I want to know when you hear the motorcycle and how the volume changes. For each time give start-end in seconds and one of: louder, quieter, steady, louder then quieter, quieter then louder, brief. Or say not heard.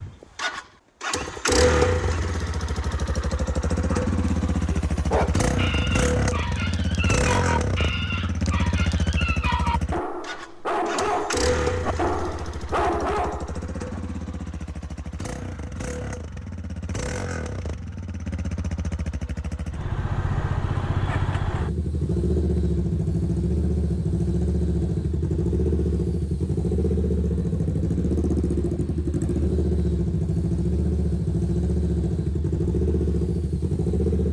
0.0-34.2 quieter then louder.